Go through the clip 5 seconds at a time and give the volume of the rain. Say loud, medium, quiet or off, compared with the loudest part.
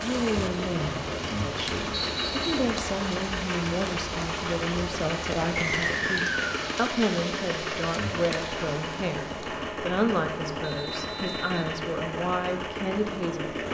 loud, loud, off.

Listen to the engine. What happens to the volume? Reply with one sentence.
The volume of the engine stays about the same.